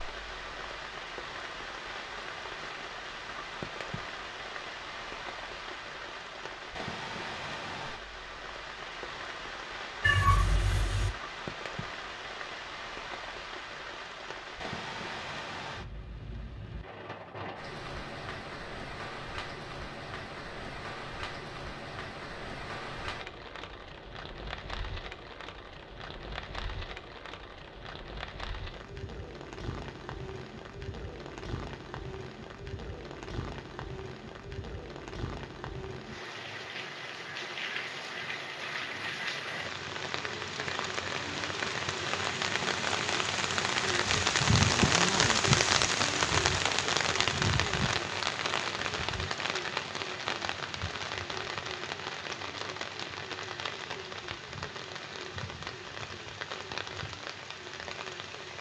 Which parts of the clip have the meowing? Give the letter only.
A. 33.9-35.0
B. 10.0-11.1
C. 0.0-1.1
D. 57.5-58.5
B.